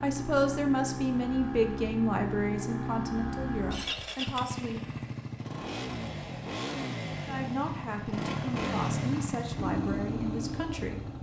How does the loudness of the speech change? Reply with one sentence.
The loudness of the speech goes down.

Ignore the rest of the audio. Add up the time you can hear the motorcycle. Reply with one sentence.
The motorcycle can be heard for 11 seconds in total.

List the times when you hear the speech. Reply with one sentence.
The speech can be heard from 0.0 to 4.9 s and from 7.2 to 11.1 s.